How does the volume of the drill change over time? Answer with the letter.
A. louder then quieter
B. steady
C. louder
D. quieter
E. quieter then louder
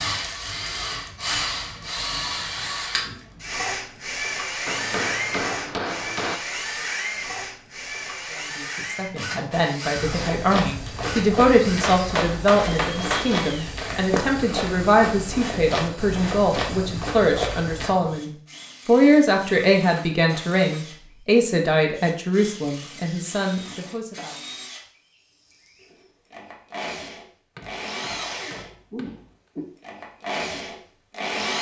E.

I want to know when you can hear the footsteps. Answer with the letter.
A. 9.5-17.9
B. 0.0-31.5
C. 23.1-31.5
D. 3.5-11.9
A.